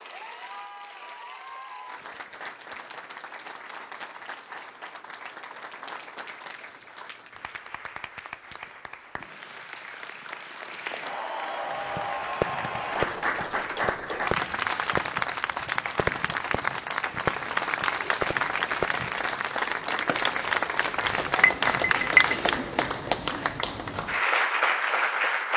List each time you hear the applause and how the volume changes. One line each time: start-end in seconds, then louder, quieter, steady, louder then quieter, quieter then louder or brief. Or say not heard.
0.0-25.5 louder.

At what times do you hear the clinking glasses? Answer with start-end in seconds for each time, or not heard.
21.4-22.4.